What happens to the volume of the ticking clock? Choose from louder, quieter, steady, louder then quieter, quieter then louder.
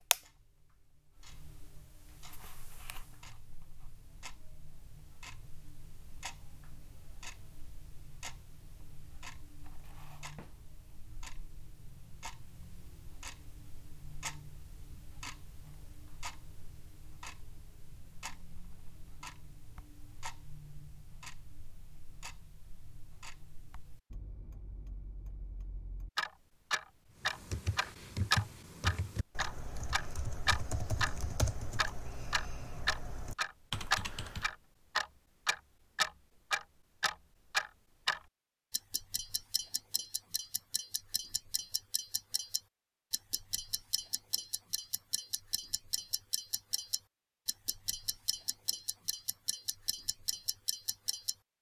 louder then quieter.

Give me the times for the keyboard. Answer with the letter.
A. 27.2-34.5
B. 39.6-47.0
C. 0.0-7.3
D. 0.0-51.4
A.